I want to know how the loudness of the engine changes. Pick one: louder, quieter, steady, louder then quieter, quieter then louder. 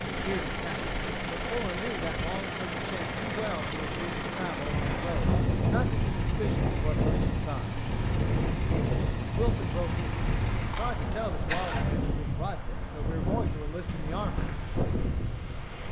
steady.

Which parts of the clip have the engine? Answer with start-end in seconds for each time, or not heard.
0.0-11.9.